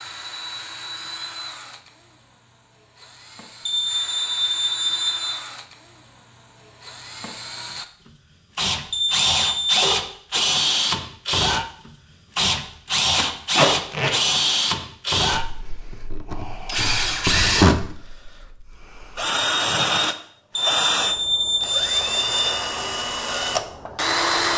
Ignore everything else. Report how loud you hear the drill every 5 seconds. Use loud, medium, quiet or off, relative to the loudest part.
quiet, medium, loud, loud, loud.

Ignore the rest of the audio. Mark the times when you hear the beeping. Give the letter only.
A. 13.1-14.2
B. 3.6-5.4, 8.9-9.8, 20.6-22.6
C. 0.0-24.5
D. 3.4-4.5
B.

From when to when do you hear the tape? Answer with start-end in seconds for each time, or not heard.
13.1-14.2.